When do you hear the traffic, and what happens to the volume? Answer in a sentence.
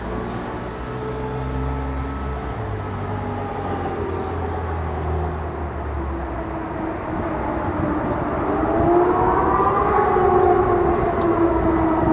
The traffic can be heard from 0.0 to 12.0 s, at a steady volume.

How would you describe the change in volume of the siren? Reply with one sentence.
The loudness of the siren goes up.